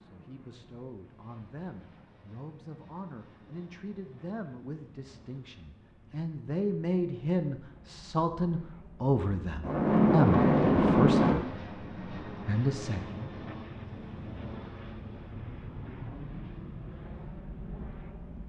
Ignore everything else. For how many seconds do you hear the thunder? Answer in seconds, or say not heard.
2 s.